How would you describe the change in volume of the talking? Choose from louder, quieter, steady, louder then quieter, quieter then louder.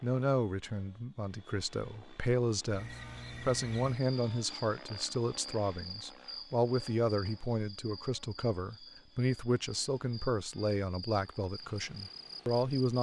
steady.